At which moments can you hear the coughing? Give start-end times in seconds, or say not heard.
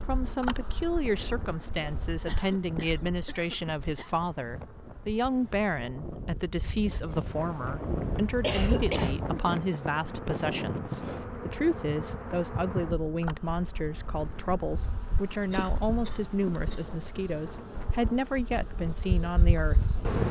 2.2-4.2, 8.0-9.6, 15.5-16.9.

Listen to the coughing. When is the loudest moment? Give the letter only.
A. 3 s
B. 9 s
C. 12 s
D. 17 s
B.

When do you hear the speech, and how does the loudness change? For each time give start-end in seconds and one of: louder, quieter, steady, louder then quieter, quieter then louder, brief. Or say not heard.
0.1-19.9 steady.